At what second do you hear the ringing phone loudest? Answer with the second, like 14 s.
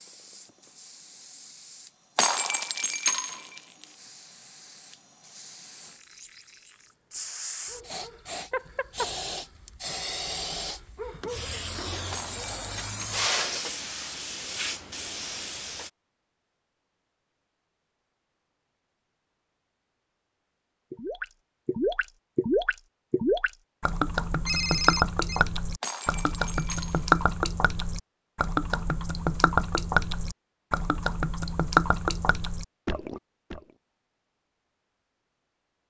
25 s.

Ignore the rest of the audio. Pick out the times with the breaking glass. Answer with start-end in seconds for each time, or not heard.
2.1-3.9, 12.1-13.2, 25.8-27.2.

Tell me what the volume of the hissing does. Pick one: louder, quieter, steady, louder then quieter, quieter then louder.
louder.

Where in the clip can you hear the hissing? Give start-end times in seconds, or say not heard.
0.0-15.9.